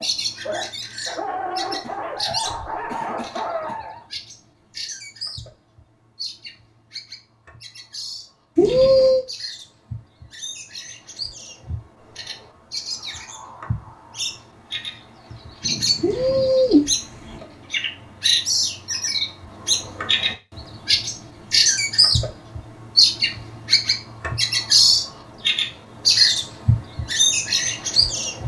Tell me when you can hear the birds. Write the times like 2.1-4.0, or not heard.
0.0-28.4.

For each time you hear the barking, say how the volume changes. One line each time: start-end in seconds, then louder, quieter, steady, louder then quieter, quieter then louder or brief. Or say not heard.
0.0-4.0 steady.